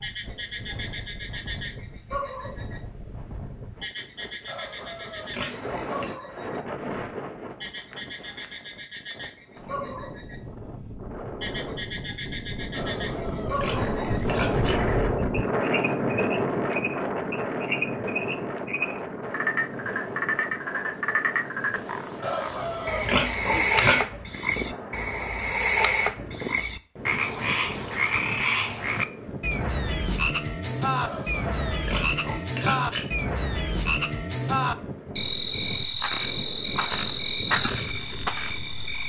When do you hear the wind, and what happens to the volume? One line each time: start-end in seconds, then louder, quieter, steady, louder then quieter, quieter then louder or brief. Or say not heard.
0.0-39.0 louder then quieter.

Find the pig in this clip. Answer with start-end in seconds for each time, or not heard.
4.5-6.2, 12.7-14.8, 22.2-23.9, 31.0-33.0.